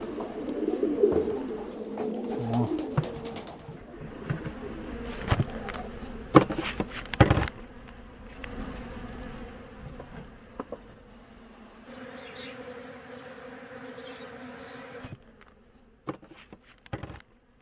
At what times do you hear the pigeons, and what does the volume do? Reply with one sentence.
You can hear the pigeons from 0.0 to 5.9 s, getting quieter.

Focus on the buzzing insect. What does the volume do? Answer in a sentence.
The volume of the buzzing insect goes up, then down.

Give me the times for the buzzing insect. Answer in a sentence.
The buzzing insect can be heard from 0.0 to 17.5 s.